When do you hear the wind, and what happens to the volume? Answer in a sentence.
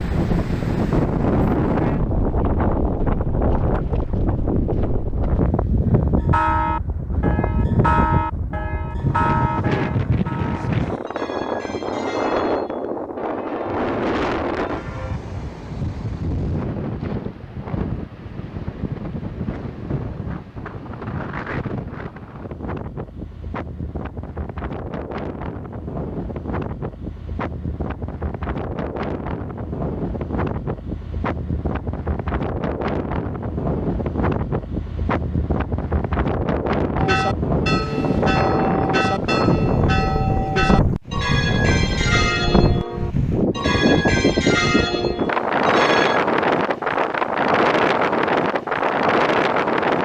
The wind can be heard from 0.0 to 49.9 s, getting quieter then louder.